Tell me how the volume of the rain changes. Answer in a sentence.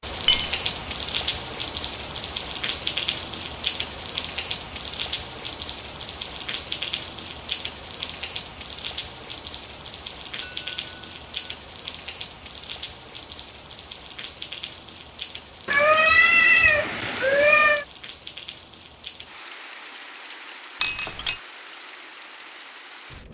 The volume of the rain goes down.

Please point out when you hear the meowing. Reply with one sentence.
The meowing can be heard from 15.7 to 17.9 s.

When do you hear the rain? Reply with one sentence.
You can hear the rain from 0.0 to 23.2 s.